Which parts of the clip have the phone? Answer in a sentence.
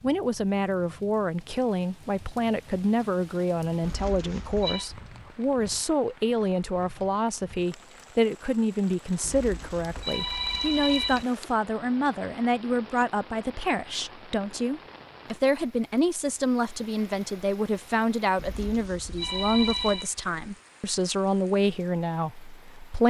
You can hear the phone from 3.8 to 4.9 s, from 9.2 to 11.2 s and from 18.4 to 20.1 s.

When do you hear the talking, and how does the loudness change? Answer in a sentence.
The talking can be heard from 0.0 to 23.0 s, at a steady volume.